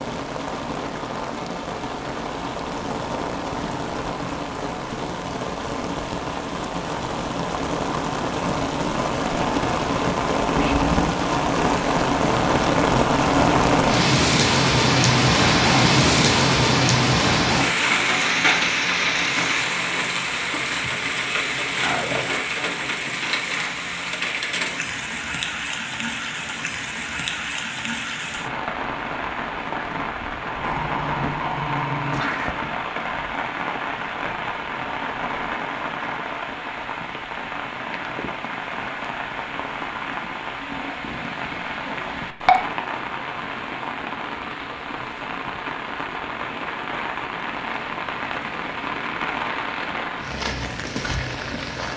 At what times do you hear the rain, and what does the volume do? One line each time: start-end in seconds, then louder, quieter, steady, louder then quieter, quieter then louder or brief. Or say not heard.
0.0-51.9 louder then quieter.